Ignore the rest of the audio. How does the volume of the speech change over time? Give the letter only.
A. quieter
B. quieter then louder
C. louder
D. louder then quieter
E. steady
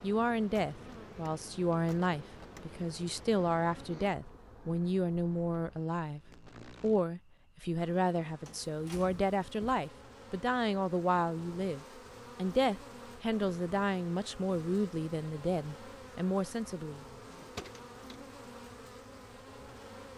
E.